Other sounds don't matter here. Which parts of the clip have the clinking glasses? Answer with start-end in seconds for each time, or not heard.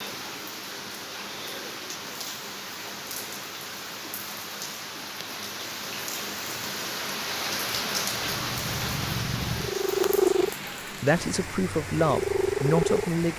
not heard.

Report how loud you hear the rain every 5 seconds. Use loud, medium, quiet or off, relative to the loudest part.
medium, loud, medium.